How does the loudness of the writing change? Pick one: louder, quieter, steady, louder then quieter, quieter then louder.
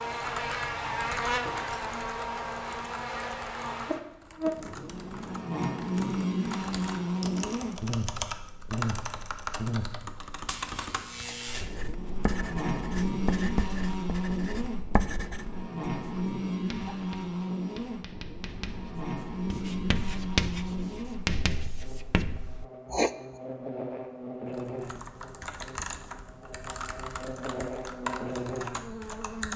quieter then louder.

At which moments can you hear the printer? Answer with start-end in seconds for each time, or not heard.
not heard.